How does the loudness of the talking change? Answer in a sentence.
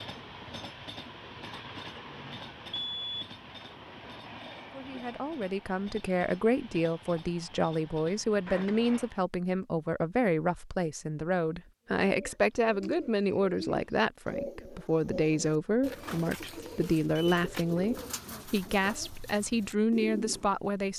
The volume of the talking stays about the same.